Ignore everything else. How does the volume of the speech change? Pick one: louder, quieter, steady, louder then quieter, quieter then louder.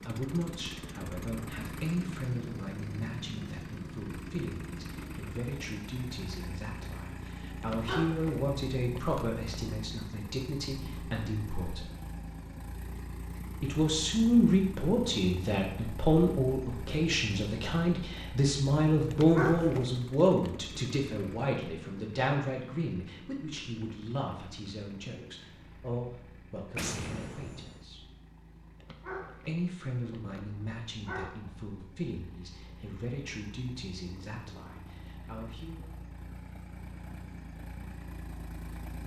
louder then quieter.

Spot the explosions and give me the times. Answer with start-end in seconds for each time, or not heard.
26.8-27.9.